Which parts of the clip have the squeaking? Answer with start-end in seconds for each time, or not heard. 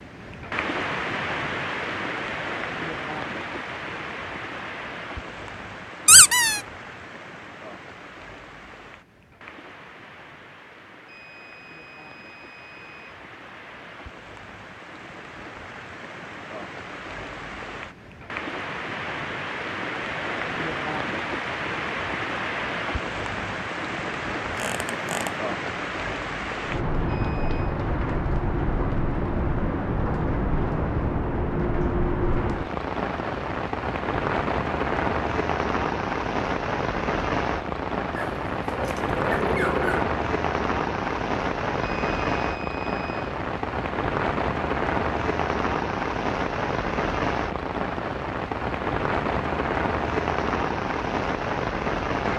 6.0-6.6, 24.6-25.3, 38.1-40.0.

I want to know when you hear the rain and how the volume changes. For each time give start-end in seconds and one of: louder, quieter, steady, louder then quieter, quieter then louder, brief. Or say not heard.
0.0-52.3 louder.